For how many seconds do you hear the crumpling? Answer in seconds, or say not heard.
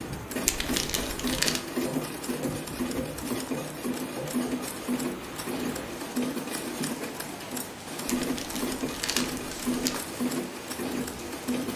3 s.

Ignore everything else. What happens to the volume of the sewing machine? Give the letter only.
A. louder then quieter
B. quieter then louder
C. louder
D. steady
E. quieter
D.